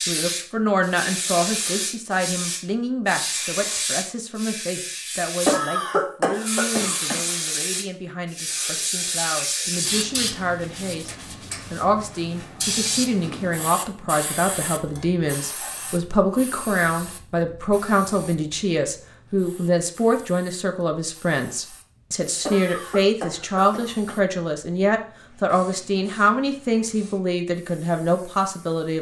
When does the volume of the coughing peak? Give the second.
6 s.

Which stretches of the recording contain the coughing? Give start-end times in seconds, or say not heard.
5.5-7.2, 22.4-24.1.